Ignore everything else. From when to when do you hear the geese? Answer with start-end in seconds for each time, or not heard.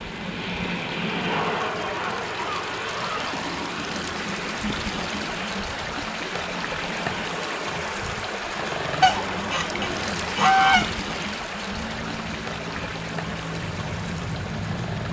1.2-3.4, 9.0-10.9.